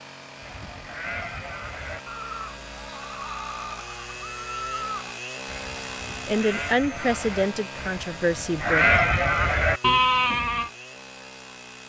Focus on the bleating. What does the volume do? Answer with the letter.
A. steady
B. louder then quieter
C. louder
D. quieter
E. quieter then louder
C.